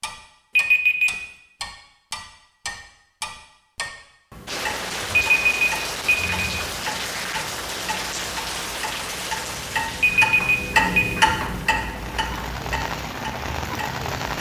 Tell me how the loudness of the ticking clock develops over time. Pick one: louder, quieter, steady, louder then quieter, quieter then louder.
louder.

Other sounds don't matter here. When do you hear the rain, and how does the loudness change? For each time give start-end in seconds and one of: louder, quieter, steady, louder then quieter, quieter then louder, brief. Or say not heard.
4.5-14.3 quieter then louder.